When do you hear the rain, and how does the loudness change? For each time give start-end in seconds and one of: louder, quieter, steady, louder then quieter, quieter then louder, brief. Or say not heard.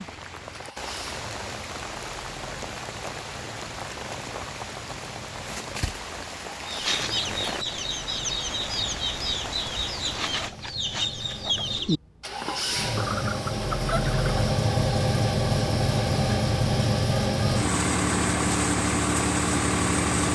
0.0-10.5 steady.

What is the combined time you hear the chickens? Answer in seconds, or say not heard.
8 s.